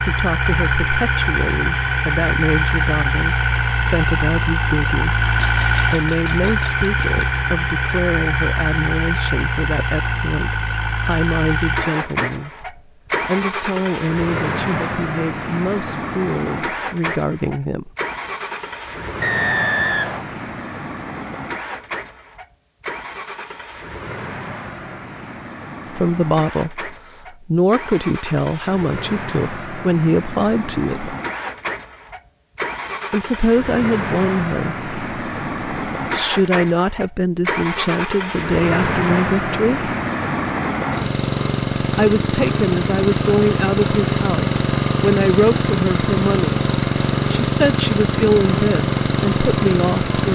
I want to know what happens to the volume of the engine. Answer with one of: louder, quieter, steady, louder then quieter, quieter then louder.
quieter then louder.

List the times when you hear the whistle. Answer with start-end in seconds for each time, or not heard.
19.2-20.2.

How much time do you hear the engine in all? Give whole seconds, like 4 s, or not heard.
50 s.